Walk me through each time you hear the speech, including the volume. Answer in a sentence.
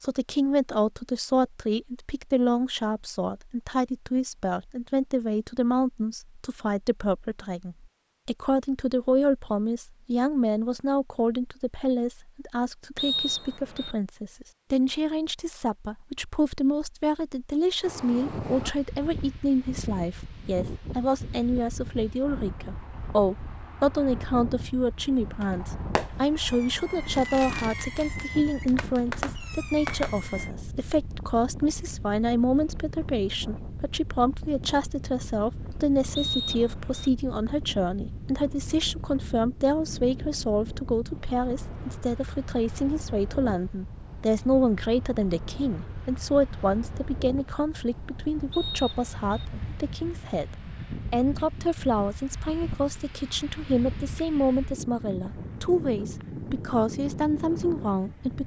The speech can be heard from 0.0 to 58.4 s, at a steady volume.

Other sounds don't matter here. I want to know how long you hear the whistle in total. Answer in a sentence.
The whistle can be heard for 3 seconds in total.